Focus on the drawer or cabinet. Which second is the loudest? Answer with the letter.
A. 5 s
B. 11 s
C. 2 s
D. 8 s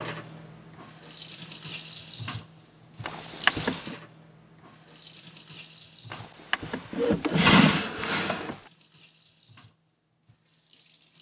D.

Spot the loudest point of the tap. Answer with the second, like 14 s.
2 s.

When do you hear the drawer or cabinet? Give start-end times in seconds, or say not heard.
3.0-4.0, 6.1-8.6.